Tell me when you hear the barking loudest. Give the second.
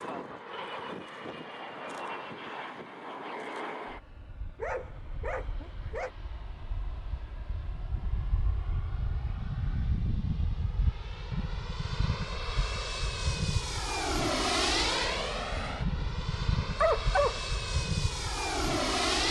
17 s.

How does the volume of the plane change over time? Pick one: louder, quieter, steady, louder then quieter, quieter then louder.
quieter then louder.